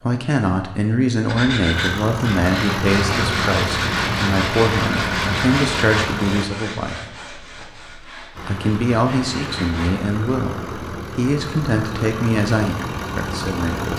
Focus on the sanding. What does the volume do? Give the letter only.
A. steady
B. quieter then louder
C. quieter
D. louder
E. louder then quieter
C.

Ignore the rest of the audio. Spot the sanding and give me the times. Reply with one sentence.
You can hear the sanding from 1.2 to 9.9 s.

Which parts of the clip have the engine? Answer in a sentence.
You can hear the engine from 1.7 to 6.5 s and from 8.3 to 13.9 s.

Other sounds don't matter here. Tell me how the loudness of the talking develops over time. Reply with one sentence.
The loudness of the talking stays about the same.